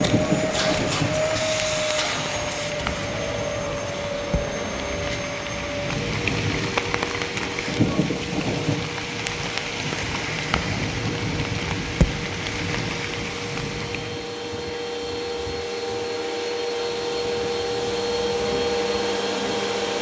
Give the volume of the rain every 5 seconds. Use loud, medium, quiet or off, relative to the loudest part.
loud, loud, loud, off.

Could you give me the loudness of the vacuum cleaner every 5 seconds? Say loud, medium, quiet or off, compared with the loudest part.
loud, medium, medium, loud.